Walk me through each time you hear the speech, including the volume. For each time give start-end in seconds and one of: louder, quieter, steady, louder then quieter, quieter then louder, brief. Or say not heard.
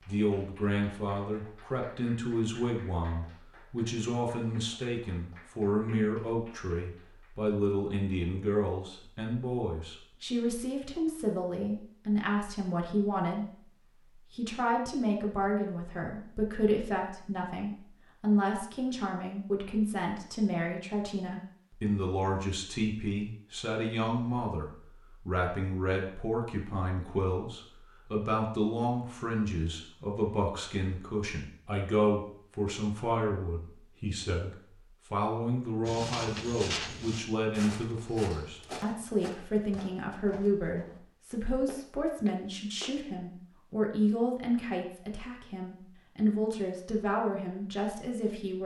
0.1-48.6 steady.